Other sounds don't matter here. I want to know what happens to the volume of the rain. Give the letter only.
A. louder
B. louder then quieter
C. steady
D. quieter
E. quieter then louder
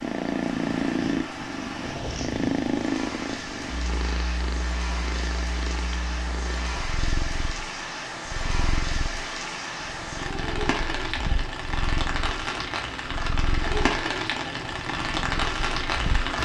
A.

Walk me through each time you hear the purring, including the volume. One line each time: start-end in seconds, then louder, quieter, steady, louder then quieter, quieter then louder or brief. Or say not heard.
0.0-16.4 quieter.